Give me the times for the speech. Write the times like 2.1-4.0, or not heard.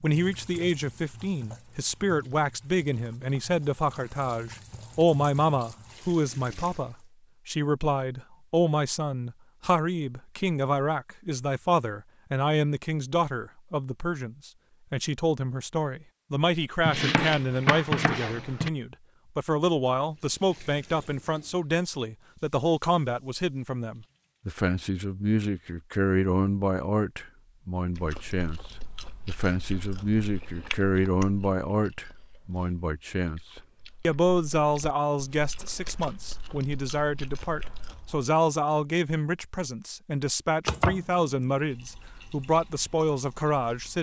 0.0-28.6, 29.2-33.4, 34.0-43.9.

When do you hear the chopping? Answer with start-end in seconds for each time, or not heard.
16.9-18.7, 40.6-41.5.